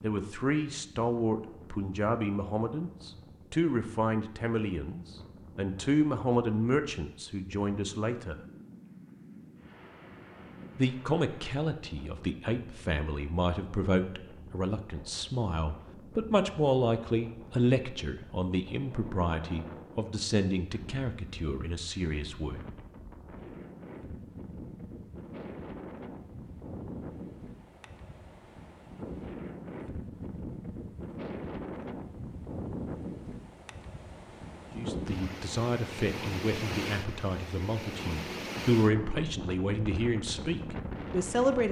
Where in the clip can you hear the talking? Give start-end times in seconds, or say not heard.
0.0-8.3, 10.8-22.6, 34.8-41.6.